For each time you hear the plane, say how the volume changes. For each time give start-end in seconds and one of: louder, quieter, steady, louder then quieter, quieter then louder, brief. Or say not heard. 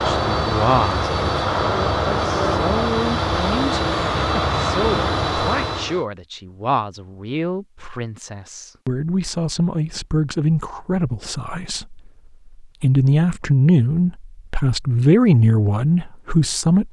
0.0-6.0 steady.